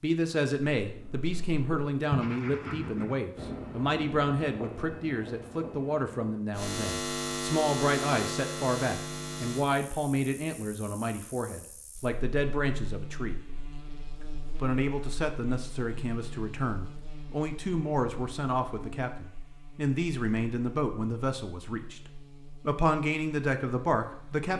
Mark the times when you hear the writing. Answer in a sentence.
The writing can be heard from 0.8 to 6.4 s.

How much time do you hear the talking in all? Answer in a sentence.
The talking can be heard for 24 seconds in total.